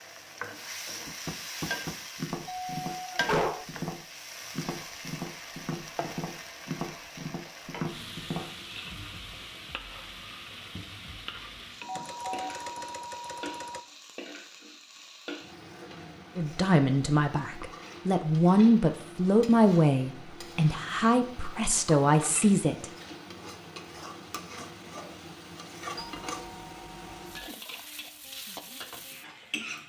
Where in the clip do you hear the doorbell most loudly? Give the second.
3 s.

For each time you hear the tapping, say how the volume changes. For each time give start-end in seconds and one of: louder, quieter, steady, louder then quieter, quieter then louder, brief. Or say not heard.
1.1-8.5 steady.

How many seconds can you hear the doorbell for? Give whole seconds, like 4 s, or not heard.
5 s.